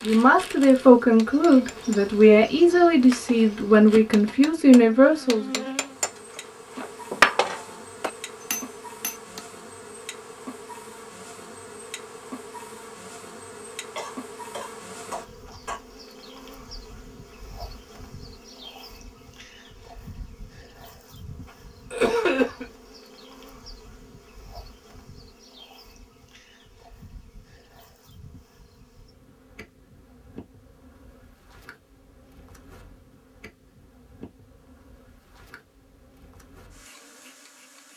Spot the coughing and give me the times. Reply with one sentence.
You can hear the coughing from 13.9 to 15.8 s and from 21.9 to 22.6 s.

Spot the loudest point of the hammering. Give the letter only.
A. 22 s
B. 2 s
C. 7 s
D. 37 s
C.